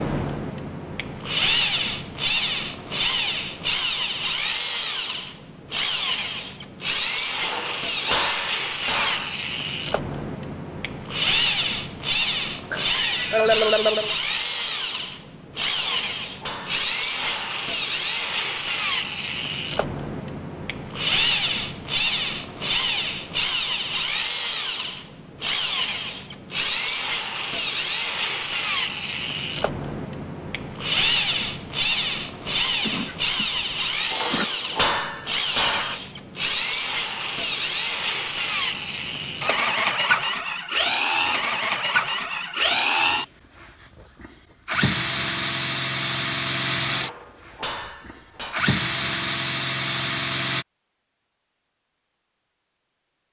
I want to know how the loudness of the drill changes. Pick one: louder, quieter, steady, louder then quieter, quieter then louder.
steady.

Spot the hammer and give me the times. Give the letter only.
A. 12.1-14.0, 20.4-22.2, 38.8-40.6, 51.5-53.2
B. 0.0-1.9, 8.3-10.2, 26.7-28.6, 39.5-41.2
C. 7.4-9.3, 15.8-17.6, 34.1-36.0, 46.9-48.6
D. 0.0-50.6
C.